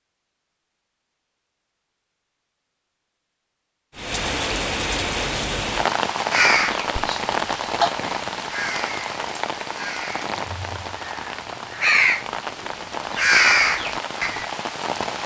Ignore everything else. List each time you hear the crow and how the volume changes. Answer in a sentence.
The crow can be heard from 6.3 to 14.4 s, getting quieter then louder.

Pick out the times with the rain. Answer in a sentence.
The rain can be heard from 4.0 to 15.2 s.